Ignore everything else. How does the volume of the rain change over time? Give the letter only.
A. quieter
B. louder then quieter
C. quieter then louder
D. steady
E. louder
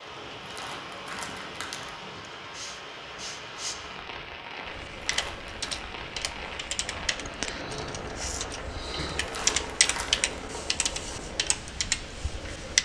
D.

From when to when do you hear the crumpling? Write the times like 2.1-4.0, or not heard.
0.4-1.9, 5.0-5.6, 9.2-10.4.